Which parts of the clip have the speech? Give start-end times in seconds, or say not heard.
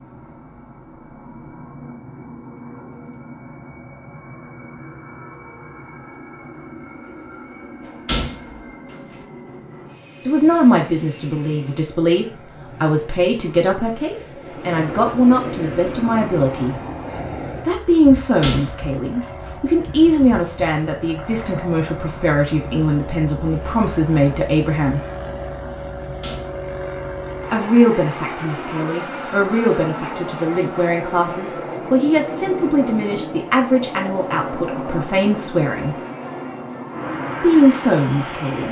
10.2-16.8, 17.6-25.0, 27.5-36.0, 37.4-38.6.